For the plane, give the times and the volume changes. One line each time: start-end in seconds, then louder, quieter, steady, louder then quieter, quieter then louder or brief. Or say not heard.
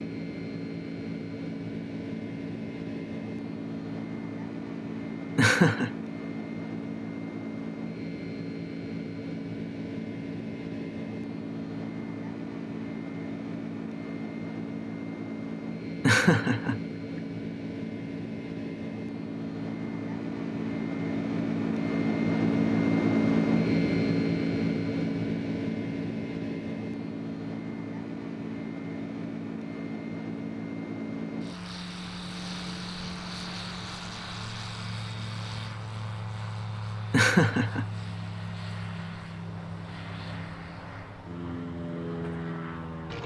0.0-43.2 louder then quieter.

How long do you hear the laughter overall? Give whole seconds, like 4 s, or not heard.
2 s.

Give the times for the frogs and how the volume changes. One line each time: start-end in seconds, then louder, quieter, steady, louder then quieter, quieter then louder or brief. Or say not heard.
not heard.